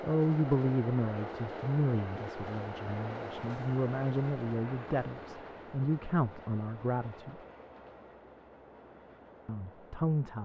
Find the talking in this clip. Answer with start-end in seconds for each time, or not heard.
0.0-7.4, 9.4-10.4.